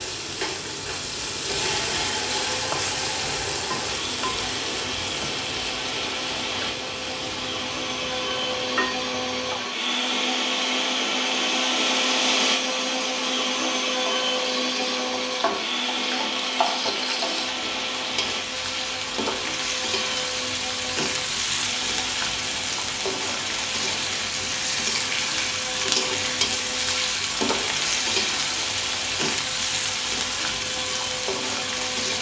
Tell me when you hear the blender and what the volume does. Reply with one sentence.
The blender can be heard from 0.2 to 32.1 s, getting louder then quieter.